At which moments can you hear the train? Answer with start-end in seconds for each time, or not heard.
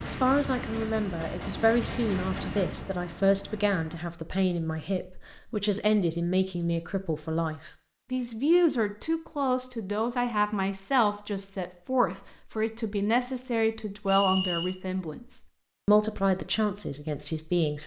0.0-4.0.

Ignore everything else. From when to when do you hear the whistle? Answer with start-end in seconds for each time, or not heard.
14.1-14.8.